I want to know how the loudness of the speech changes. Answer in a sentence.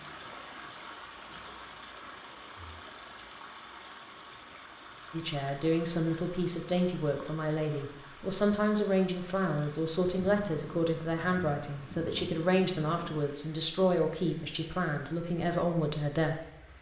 The loudness of the speech stays about the same.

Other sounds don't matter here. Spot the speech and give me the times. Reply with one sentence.
The speech can be heard from 5.1 to 16.4 s.